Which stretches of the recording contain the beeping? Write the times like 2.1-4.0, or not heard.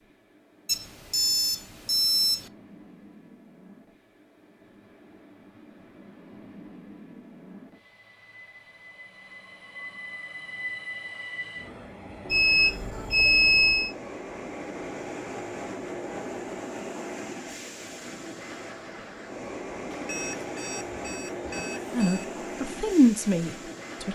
0.7-2.5, 12.3-13.9, 19.9-22.3.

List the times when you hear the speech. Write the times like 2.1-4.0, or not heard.
21.9-24.0.